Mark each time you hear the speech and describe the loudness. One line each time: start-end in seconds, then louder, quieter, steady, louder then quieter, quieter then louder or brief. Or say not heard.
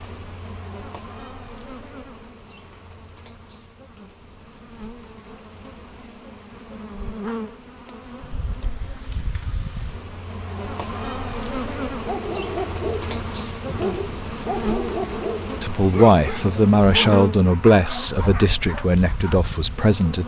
15.6-20.2 quieter.